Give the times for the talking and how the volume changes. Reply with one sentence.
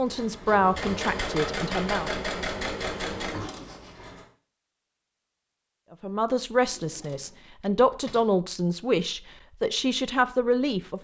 The talking can be heard briefly from 0.0 to 2.1 s; and from 5.9 to 11.0 s, at a steady volume.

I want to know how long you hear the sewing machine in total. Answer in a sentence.
The sewing machine can be heard for 4 seconds in total.